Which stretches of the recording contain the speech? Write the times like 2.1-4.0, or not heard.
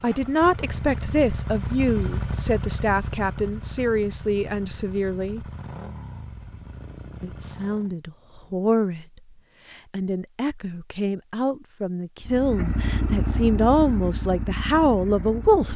0.0-5.5, 7.2-9.1, 9.7-15.7.